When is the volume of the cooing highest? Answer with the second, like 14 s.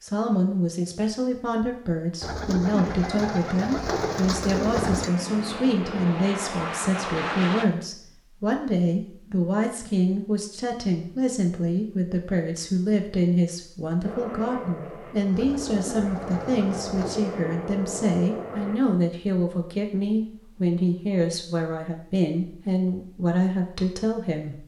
5 s.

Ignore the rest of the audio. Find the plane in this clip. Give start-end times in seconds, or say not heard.
2.6-7.7, 14.0-18.8.